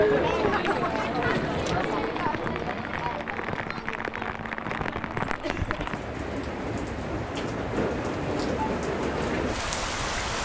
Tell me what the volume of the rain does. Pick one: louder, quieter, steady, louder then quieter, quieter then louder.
louder.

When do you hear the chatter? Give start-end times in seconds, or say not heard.
0.0-6.0.